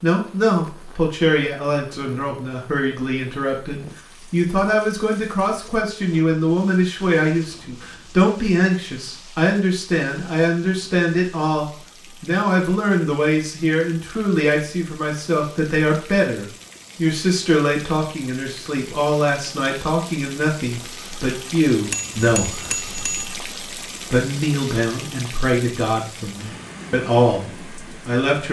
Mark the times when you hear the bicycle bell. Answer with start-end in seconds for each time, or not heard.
21.9-23.4.